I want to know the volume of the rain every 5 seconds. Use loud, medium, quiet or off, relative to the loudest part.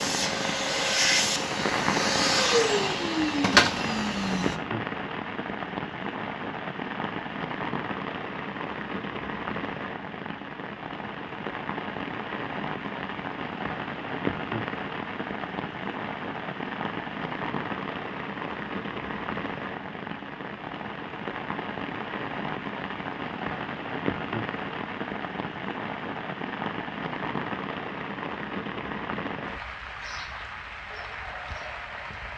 loud, loud, loud, loud, loud, loud, medium.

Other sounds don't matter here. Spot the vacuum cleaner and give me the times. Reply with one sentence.
You can hear the vacuum cleaner from 0.0 to 4.6 s.